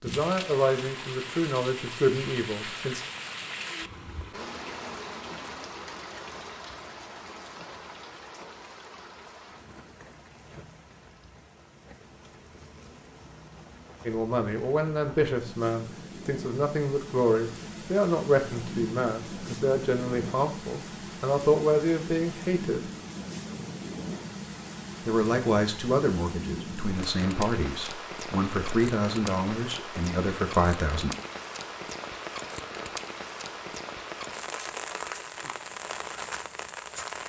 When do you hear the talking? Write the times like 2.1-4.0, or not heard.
0.0-3.0, 14.1-22.9, 25.1-31.1.